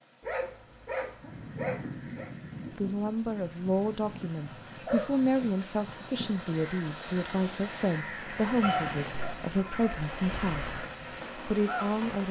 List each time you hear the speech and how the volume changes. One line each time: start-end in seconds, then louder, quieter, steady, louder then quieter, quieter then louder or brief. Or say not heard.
2.8-12.2 steady.